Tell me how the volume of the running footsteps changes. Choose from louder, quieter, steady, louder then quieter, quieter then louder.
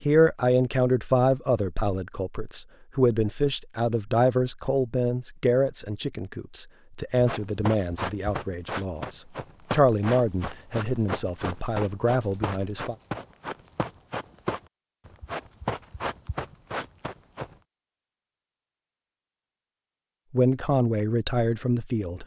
steady.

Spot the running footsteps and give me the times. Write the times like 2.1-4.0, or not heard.
7.2-17.6.